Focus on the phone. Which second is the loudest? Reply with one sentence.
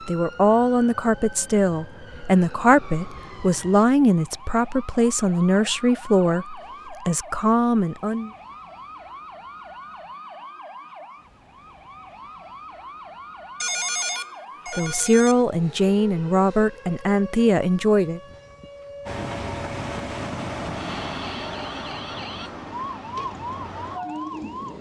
The volume of the phone peaks at 14 seconds.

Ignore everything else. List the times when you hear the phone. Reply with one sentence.
The phone can be heard from 13.6 to 15.4 s.